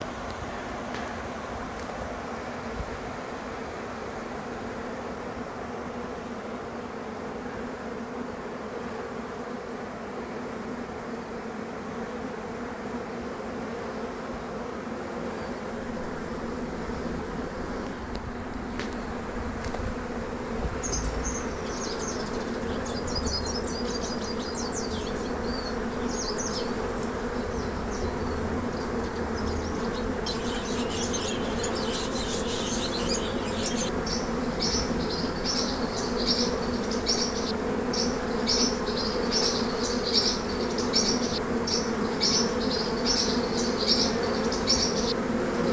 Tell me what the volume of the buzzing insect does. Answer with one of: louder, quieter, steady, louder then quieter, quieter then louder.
louder.